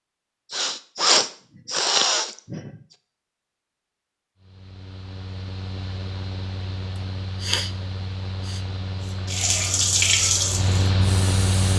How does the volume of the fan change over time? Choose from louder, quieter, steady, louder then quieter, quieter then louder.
louder.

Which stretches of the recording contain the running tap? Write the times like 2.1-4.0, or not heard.
9.2-11.7.